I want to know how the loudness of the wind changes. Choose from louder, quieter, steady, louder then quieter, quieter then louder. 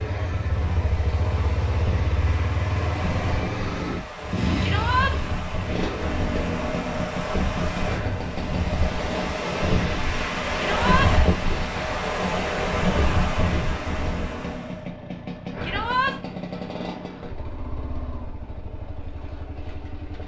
louder.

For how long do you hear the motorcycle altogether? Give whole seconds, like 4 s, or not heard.
20 s.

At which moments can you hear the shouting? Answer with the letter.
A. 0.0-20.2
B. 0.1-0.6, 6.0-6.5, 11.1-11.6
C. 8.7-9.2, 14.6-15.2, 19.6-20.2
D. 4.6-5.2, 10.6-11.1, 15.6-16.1
D.